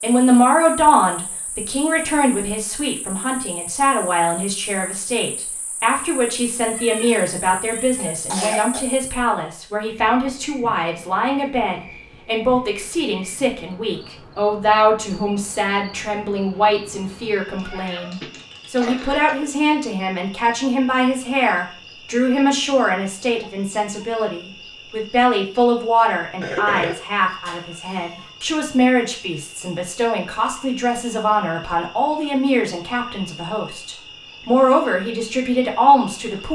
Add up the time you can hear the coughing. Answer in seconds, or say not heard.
3 s.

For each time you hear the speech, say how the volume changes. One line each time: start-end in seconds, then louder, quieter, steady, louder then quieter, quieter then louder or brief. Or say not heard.
0.0-36.5 steady.